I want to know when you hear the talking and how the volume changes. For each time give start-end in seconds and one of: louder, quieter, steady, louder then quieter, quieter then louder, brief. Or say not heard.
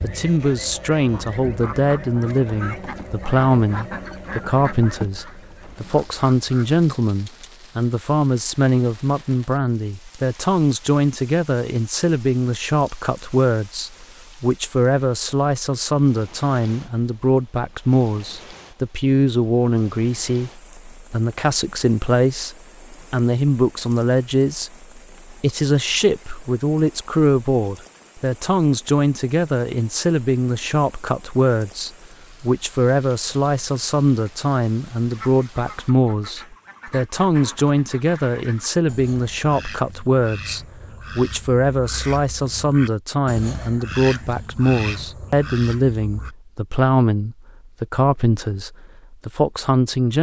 0.0-50.1 steady.